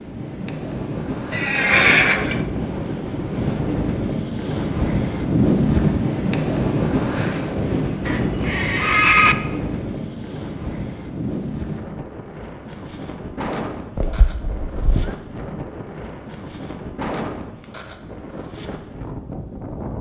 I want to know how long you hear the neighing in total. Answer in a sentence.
You can hear the neighing for 4 seconds altogether.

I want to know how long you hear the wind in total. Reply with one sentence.
You can hear the wind for 20 seconds altogether.